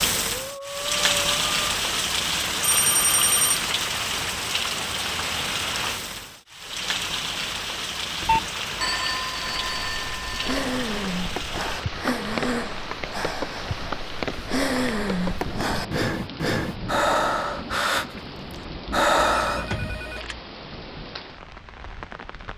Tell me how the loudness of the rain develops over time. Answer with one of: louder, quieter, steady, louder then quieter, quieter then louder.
quieter.